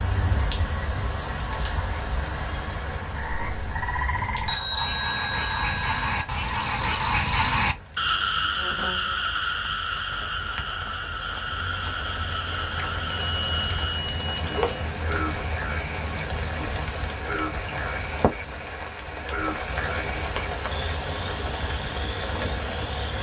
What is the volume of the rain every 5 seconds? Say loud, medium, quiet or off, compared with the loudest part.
loud, quiet, loud, loud, loud.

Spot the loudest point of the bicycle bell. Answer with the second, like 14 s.
5 s.